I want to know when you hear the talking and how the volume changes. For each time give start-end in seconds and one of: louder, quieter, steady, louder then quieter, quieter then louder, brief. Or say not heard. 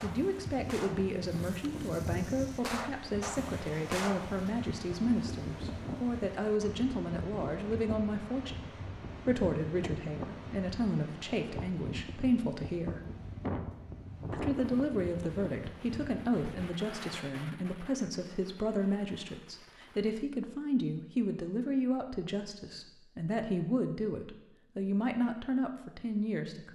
0.0-13.0 steady
14.3-26.7 steady.